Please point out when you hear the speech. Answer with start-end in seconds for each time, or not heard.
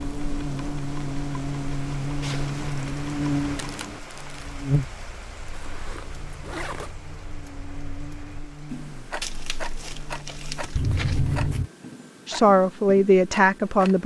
12.2-14.0.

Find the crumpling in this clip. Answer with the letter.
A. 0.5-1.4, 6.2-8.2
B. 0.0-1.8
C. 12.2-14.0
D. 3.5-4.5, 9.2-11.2
D.